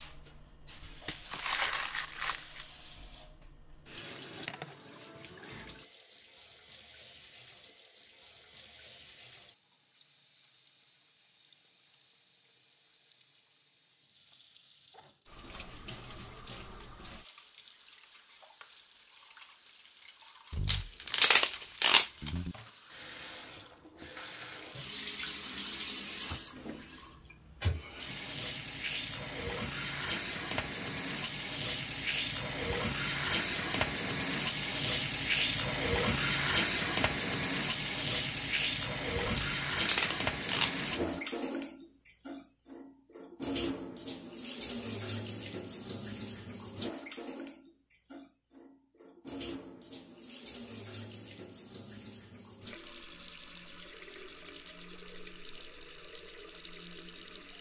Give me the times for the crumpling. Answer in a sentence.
You can hear the crumpling from 1.1 to 2.6 s, from 20.5 to 22.5 s and from 39.2 to 41.2 s.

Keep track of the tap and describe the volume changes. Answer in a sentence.
The loudness of the tap goes up, then down.